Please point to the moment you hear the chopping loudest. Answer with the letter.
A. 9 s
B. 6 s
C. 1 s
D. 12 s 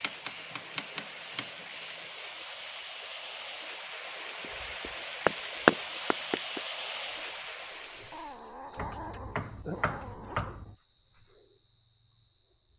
B.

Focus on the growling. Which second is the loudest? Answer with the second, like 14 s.
9 s.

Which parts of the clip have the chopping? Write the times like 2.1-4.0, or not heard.
0.0-1.6, 5.2-6.6, 8.8-10.8.